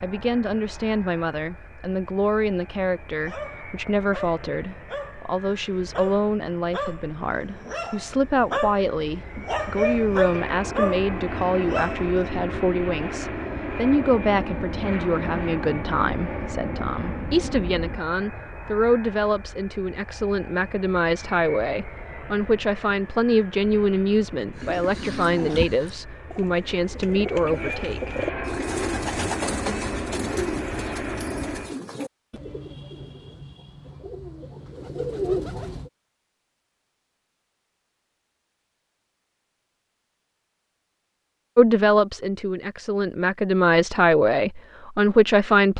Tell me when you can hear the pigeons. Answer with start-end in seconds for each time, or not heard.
24.5-35.9.